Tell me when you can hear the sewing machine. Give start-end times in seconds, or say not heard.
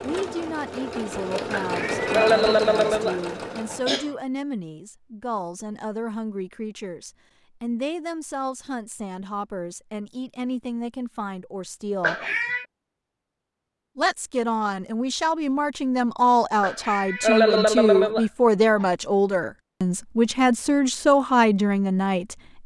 0.0-4.0.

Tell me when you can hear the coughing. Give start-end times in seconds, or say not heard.
1.5-4.1, 12.0-12.7, 16.6-18.9.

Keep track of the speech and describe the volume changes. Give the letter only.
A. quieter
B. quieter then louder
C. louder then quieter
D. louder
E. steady
D.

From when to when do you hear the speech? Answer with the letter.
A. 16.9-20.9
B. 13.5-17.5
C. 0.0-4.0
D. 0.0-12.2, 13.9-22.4
D.